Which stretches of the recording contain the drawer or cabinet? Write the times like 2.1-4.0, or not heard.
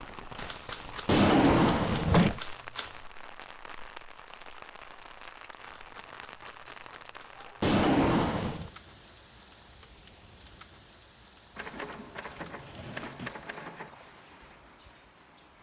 1.1-2.4, 7.6-8.7, 11.8-13.4.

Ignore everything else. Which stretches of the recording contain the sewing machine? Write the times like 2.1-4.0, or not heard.
not heard.